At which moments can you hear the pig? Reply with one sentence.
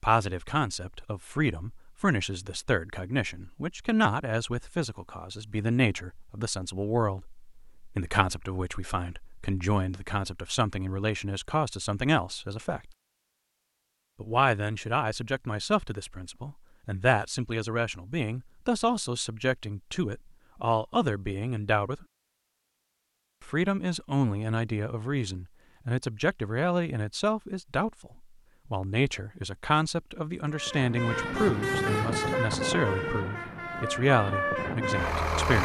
You can't hear the pig here.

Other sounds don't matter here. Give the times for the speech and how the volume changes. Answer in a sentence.
The speech can be heard from 0.0 to 12.9 s, at a steady volume; from 14.2 to 22.1 s, at a steady volume; and from 23.4 to 35.5 s, at a steady volume.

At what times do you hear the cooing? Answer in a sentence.
You can't hear the cooing here.